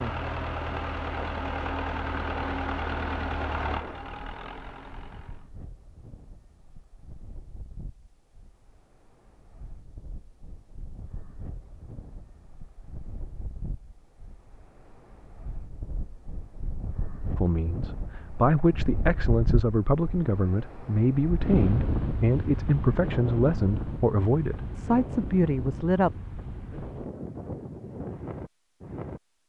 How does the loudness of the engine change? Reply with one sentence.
The loudness of the engine goes down.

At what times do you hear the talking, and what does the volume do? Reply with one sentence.
The talking can be heard from 17.4 to 26.1 s, at a steady volume.